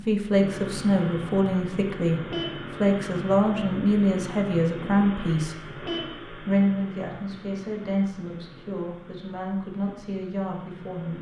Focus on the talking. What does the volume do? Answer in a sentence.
The loudness of the talking goes down.